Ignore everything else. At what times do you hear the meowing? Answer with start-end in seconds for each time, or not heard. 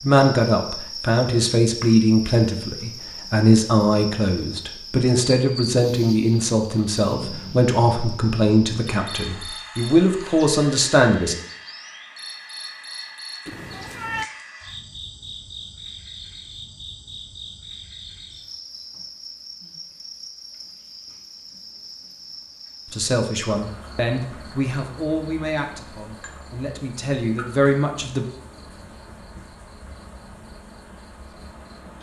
13.4-14.3.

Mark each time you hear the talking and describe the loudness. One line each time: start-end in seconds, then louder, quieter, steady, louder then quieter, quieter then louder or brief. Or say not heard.
0.0-11.3 steady
22.9-28.2 quieter then louder.